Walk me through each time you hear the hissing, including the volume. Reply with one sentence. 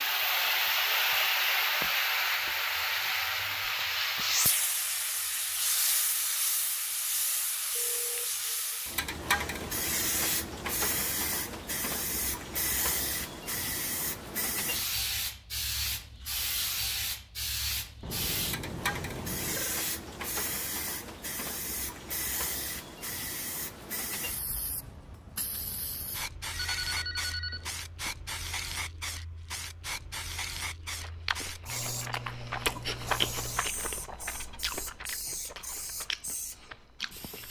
The hissing can be heard from 0.0 to 37.4 s, getting quieter.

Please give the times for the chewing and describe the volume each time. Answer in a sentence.
The chewing can be heard from 30.8 to 37.4 s, getting louder then quieter.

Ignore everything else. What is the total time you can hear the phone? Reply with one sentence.
You can hear the phone for 4 seconds altogether.